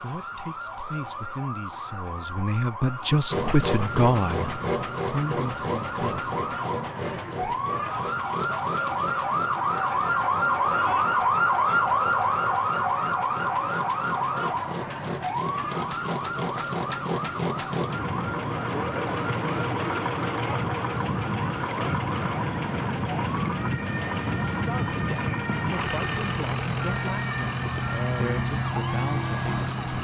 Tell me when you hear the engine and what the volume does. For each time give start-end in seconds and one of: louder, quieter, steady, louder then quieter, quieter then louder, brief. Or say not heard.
3.3-29.9 quieter then louder.